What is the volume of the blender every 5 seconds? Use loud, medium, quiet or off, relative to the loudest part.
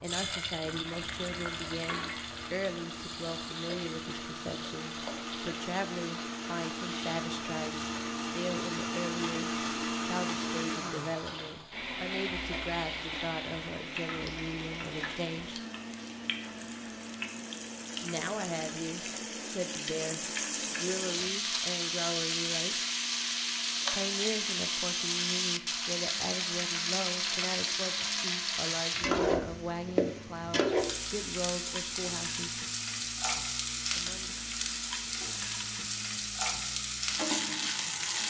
medium, loud, loud, medium, quiet, quiet, quiet, quiet.